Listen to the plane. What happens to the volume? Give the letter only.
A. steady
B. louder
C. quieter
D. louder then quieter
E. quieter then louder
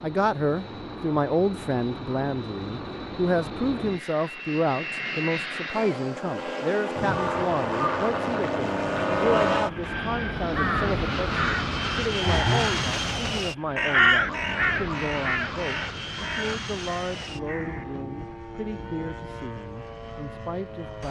D.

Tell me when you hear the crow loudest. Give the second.
14 s.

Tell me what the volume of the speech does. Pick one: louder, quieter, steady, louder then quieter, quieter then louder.
quieter.